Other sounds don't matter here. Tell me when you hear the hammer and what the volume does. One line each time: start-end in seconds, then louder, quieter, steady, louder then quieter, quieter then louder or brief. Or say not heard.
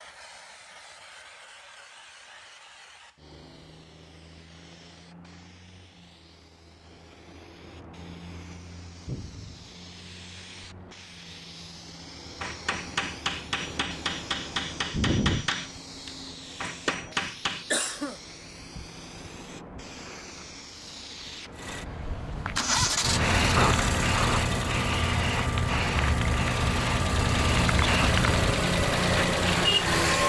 12.4-17.6 steady.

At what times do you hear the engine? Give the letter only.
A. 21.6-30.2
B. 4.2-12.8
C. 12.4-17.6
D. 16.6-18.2
A.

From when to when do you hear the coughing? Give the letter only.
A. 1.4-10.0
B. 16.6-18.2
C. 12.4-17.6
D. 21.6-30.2
B.